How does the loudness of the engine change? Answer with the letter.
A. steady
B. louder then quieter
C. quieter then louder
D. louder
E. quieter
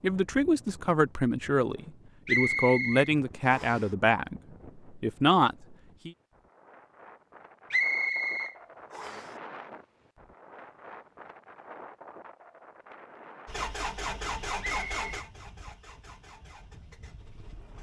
E.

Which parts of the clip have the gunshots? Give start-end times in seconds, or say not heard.
not heard.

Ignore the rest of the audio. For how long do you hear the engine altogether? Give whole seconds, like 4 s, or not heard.
4 s.